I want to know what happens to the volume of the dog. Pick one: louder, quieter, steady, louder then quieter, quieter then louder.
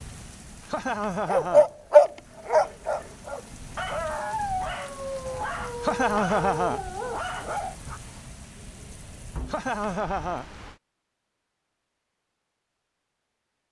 quieter.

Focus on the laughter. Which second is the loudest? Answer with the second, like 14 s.
6 s.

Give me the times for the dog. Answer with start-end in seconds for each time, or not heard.
1.2-8.0.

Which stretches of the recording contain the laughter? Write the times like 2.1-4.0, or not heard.
0.7-2.2, 5.8-6.8, 9.4-10.4.